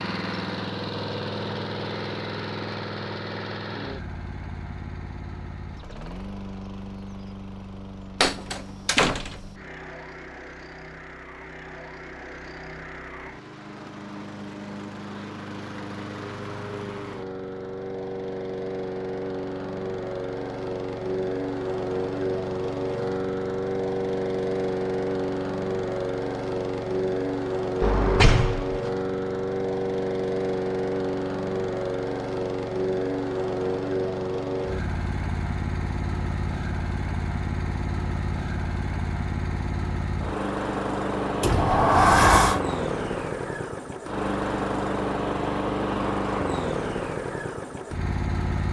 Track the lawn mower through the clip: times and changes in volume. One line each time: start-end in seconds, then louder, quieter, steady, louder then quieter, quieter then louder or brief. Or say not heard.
0.0-48.6 louder.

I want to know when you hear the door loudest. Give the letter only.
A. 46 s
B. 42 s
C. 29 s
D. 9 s
B.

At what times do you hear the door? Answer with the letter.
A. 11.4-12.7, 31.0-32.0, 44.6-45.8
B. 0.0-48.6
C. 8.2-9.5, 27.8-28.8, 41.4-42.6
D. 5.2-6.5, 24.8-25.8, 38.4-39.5
C.